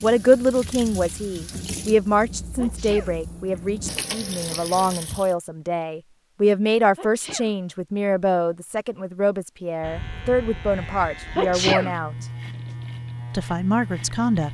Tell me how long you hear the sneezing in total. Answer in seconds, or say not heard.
2 s.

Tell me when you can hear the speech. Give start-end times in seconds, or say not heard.
0.0-12.2, 13.3-14.5.